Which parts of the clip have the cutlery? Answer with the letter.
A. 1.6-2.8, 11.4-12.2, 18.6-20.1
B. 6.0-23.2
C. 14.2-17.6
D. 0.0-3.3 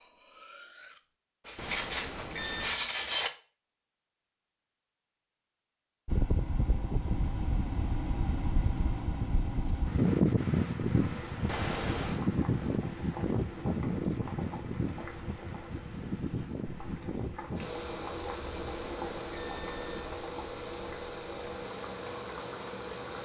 D.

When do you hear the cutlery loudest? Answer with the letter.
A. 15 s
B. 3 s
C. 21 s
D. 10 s
B.